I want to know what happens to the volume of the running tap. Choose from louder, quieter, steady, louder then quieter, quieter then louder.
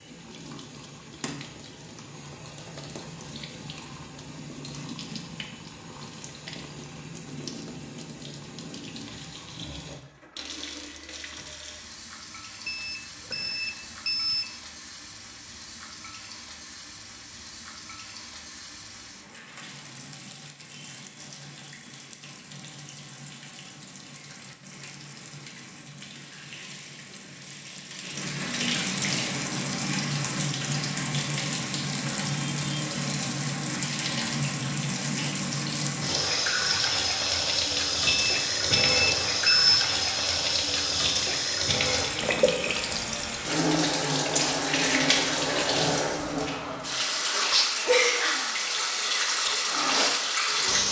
louder.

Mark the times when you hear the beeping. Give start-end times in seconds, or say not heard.
12.7-14.4, 38.0-39.9.